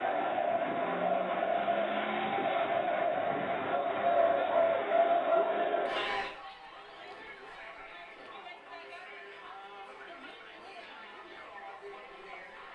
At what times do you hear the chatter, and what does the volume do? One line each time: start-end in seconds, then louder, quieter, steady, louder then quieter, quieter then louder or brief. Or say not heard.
0.0-12.7 quieter.